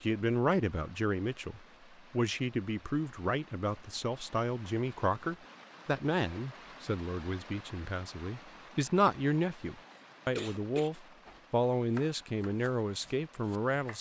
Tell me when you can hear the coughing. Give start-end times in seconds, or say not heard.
9.9-10.9.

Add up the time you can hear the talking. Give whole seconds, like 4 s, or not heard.
14 s.